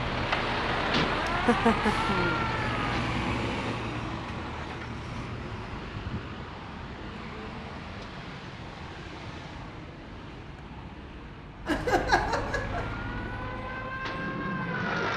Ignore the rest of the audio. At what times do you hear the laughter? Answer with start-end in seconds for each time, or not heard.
1.2-2.5, 11.7-12.9.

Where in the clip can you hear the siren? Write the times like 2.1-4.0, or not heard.
0.0-3.0, 12.8-15.1.